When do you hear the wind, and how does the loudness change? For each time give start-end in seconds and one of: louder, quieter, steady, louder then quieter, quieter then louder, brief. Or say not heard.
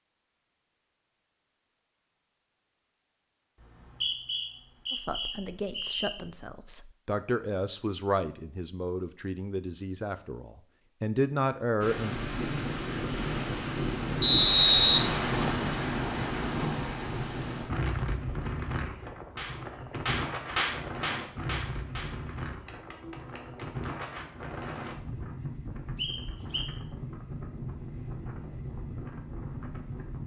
11.8-30.2 quieter.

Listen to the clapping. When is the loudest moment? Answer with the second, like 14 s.
21 s.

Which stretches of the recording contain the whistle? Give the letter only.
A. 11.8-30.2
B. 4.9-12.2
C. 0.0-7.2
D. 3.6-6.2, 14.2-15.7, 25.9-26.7
D.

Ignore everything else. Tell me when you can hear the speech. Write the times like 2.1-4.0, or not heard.
4.9-12.2.